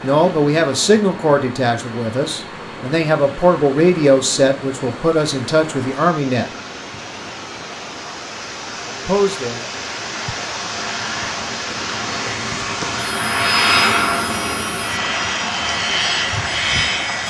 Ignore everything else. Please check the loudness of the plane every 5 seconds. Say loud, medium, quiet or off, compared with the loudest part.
quiet, quiet, loud, loud.